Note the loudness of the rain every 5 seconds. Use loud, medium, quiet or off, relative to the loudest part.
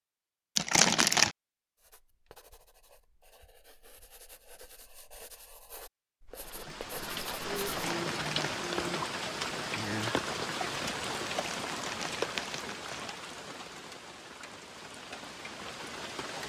off, loud, loud, medium.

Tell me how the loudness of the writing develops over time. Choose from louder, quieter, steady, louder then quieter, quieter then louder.
louder.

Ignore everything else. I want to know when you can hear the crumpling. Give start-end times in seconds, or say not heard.
0.6-1.4, 7.8-8.7, 11.2-13.1.